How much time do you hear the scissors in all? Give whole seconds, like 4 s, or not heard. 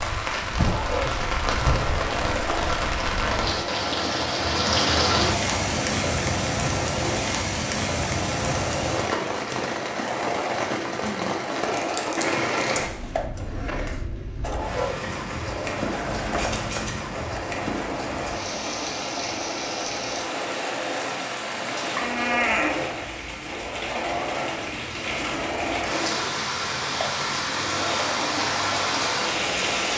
2 s.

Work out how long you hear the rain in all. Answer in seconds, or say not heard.
30 s.